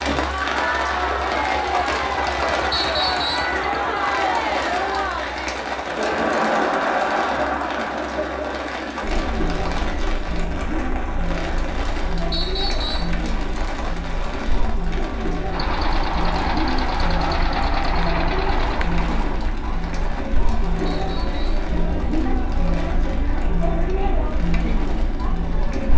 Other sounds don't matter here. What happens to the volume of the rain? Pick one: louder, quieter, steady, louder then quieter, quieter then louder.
quieter.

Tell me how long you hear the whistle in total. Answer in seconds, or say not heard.
2 s.